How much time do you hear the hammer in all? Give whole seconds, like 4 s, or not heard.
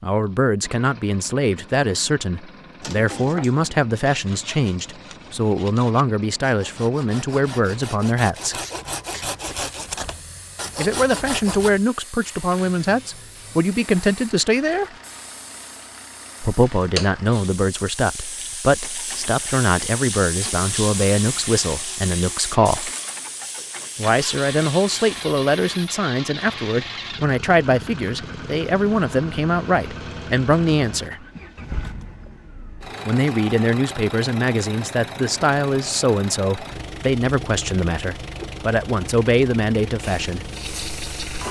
not heard.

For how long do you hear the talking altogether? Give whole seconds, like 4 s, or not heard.
34 s.